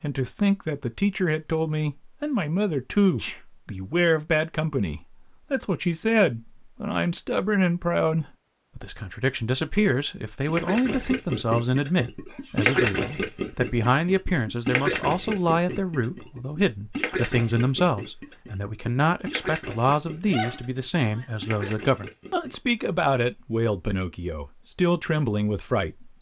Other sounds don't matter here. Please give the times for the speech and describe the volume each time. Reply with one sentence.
The speech can be heard from 0.0 to 26.1 s, at a steady volume.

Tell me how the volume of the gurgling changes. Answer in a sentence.
The loudness of the gurgling goes down.